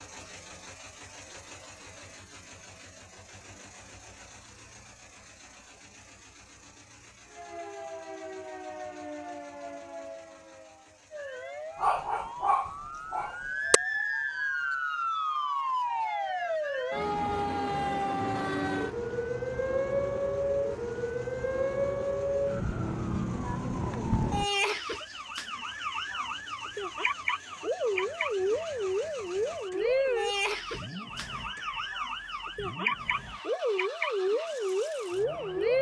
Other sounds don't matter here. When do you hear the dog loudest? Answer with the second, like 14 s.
12 s.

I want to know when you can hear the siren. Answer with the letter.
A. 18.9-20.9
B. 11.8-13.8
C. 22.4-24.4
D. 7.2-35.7
D.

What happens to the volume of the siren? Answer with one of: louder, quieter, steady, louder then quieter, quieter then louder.
louder.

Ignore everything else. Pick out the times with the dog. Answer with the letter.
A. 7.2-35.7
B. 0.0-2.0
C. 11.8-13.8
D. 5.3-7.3
C.